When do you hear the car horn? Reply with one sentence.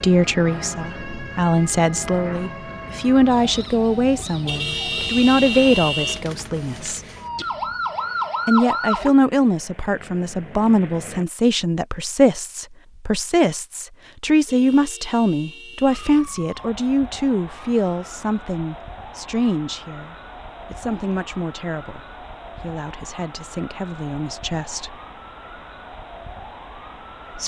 The car horn can be heard from 4.5 to 6.2 s and from 14.4 to 16.2 s.